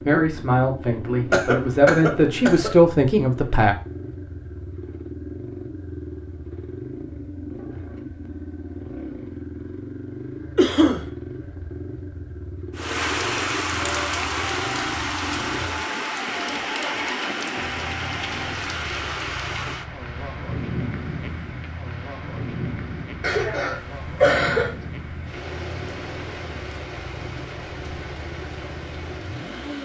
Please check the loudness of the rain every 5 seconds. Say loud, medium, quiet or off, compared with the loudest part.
off, off, loud, loud, medium, medium.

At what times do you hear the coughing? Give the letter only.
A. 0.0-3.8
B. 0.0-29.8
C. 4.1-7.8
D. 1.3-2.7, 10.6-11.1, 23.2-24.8
D.